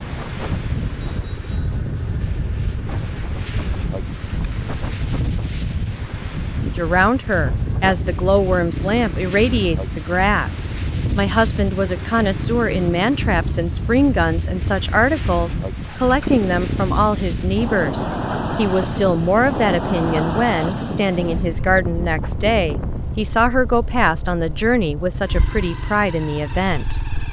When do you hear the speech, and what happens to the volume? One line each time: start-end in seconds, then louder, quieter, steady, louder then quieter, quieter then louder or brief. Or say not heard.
6.8-27.0 steady.